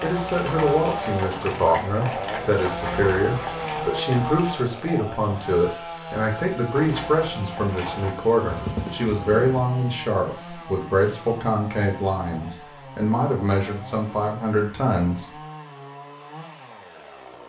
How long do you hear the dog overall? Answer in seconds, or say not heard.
not heard.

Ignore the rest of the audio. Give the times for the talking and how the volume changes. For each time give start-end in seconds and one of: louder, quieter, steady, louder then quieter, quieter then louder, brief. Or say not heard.
0.0-15.3 steady.